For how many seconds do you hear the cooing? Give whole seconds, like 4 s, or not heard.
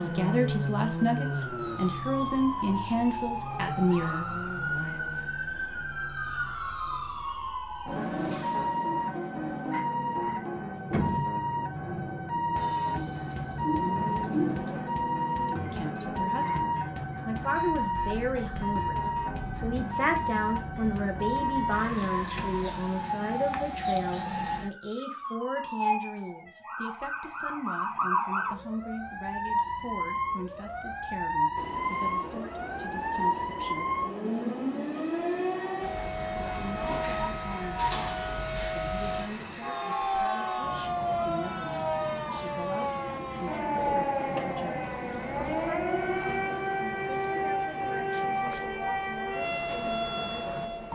4 s.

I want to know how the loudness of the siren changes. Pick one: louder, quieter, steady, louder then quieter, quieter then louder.
steady.